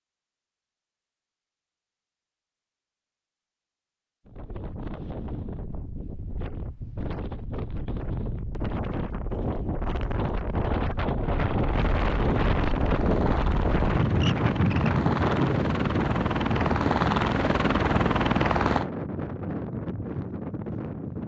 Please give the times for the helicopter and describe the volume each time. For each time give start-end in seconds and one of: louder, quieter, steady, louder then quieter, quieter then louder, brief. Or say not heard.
11.2-18.9 louder.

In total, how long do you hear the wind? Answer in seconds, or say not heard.
17 s.